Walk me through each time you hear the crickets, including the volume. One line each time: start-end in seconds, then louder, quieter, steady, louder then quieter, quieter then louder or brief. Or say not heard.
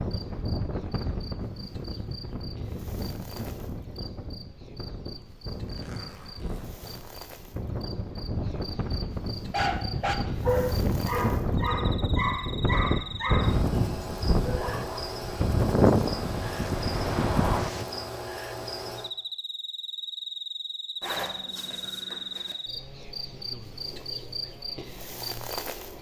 0.0-25.9 louder.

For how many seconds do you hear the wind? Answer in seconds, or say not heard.
18 s.